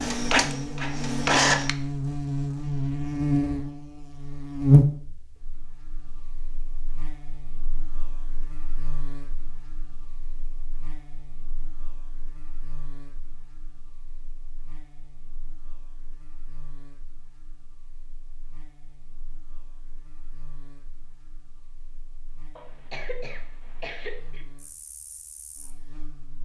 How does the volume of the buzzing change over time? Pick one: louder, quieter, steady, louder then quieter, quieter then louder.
quieter.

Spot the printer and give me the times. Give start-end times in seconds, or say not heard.
0.0-1.8.